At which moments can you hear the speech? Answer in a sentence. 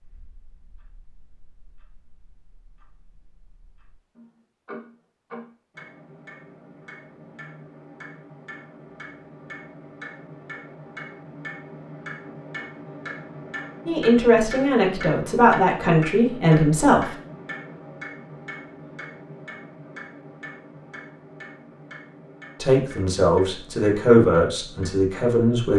You can hear the speech from 13.8 to 17.1 s and from 22.6 to 25.7 s.